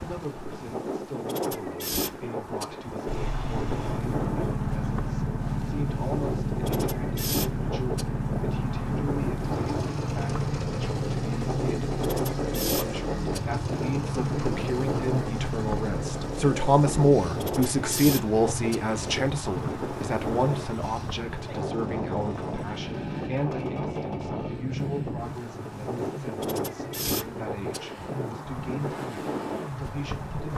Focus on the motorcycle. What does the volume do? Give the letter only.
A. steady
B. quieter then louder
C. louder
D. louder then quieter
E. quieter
E.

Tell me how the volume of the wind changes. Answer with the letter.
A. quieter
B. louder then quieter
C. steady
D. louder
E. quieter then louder
C.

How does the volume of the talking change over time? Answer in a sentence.
The volume of the talking goes up, then down.